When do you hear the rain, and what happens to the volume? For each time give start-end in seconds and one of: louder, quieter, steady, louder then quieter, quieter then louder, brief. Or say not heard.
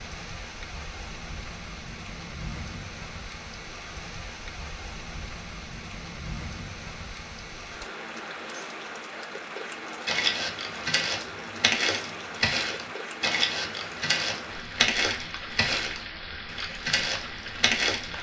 0.0-18.1 steady.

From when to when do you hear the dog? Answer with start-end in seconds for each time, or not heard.
not heard.